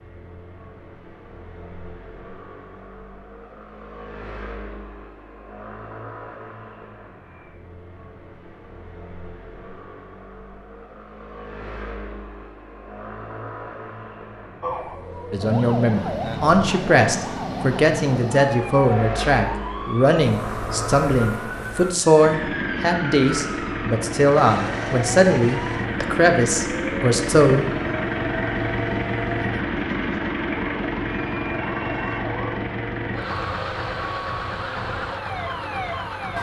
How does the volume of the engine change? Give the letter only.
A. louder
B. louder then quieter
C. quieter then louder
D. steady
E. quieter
A.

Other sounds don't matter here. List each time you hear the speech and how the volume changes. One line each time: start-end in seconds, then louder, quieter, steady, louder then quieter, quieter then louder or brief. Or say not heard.
15.3-27.6 steady.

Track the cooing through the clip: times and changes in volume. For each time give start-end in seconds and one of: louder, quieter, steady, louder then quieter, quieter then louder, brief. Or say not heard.
not heard.